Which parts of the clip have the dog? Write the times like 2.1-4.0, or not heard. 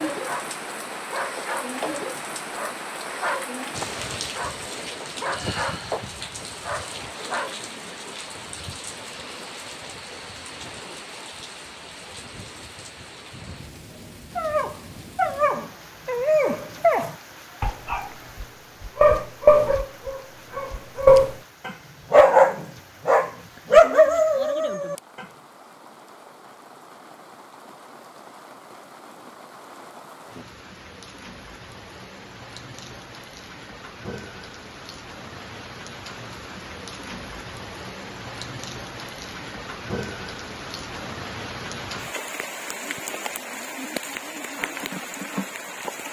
0.1-7.5, 14.3-25.2.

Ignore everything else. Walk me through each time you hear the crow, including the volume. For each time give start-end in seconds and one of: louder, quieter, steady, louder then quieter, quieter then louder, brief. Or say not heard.
not heard.